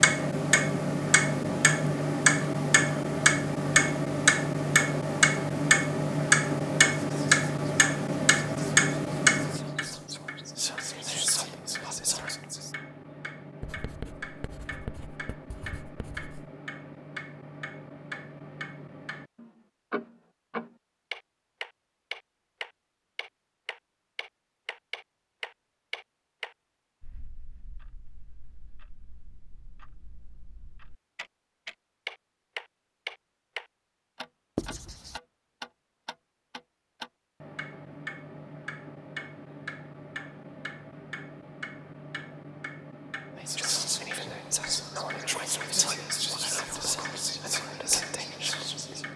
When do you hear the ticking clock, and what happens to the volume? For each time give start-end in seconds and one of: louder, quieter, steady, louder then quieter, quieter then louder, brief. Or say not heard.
0.0-49.1 quieter.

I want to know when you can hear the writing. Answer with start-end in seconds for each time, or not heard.
13.6-16.5, 34.5-35.2.